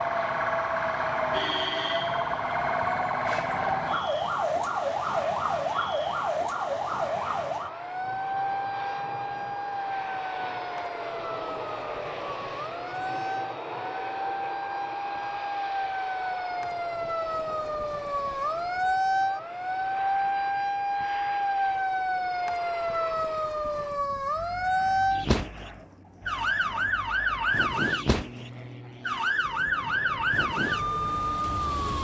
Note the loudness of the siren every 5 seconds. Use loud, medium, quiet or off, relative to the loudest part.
loud, loud, medium, loud, loud, loud, loud.